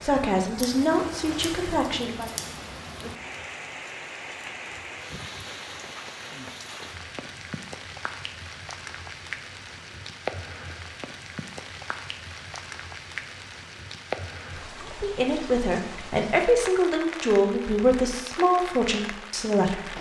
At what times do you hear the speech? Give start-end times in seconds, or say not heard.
0.0-2.3, 15.0-19.9.